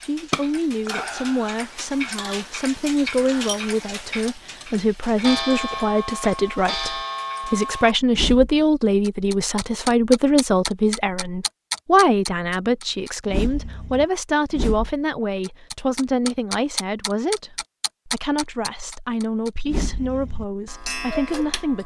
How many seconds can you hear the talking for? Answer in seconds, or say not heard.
22 s.